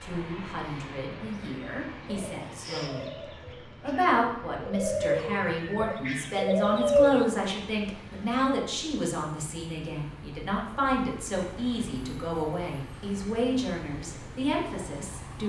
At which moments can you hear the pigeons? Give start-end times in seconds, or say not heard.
1.2-7.2.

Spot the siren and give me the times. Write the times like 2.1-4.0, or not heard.
not heard.